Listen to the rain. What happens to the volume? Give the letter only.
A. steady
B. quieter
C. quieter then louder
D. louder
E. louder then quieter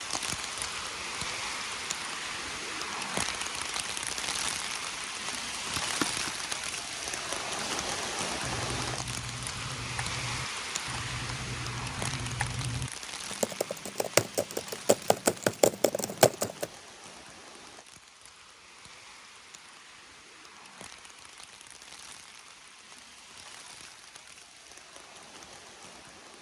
B.